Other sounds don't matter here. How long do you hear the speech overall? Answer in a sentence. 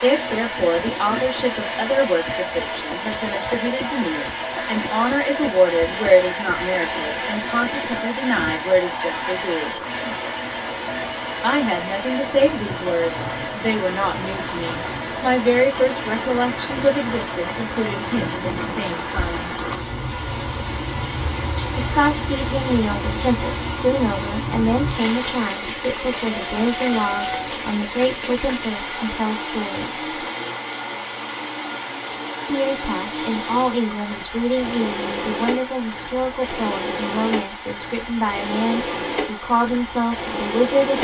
The speech can be heard for 35 seconds in total.